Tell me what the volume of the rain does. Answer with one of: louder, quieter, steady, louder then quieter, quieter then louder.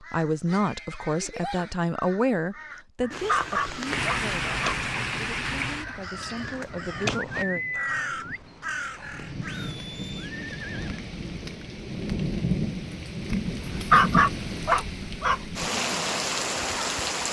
quieter then louder.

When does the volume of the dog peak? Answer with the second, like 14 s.
14 s.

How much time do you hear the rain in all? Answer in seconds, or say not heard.
14 s.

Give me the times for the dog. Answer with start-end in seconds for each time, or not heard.
3.0-4.8, 13.6-15.4.